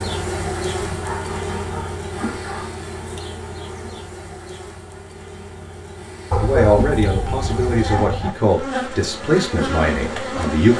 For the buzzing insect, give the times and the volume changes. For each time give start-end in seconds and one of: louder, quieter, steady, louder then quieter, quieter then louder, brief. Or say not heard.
0.0-10.7 quieter then louder.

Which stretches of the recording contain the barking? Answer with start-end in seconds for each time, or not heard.
0.9-2.8, 6.3-8.3.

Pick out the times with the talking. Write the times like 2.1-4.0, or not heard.
6.4-10.7.